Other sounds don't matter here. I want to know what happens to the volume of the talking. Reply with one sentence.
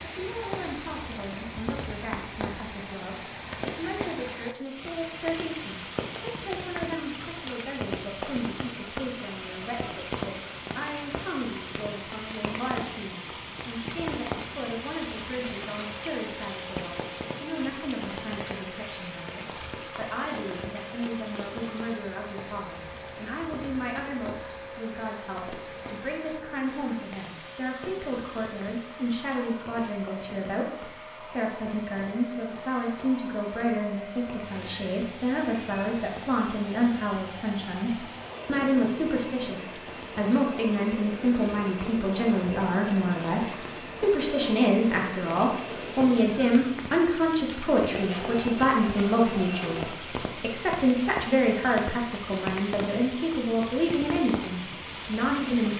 The loudness of the talking goes up.